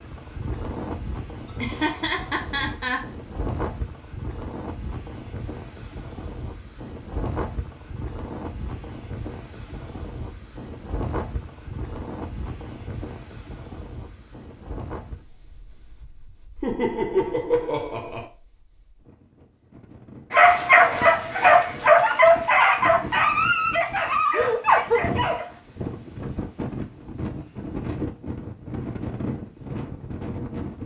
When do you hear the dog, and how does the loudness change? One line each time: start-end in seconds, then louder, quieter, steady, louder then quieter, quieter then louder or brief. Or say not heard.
20.3-25.6 quieter.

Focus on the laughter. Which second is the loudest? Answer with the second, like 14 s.
25 s.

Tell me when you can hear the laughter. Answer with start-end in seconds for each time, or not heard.
1.4-3.0, 16.6-18.2, 24.3-25.0.